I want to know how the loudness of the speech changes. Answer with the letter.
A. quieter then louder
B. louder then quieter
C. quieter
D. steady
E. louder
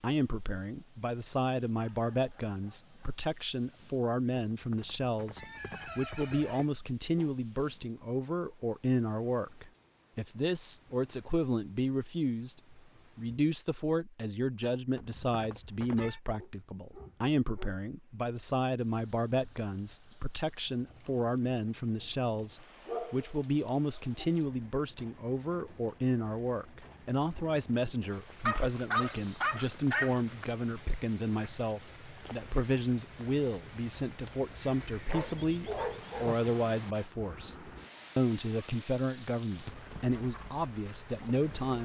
D.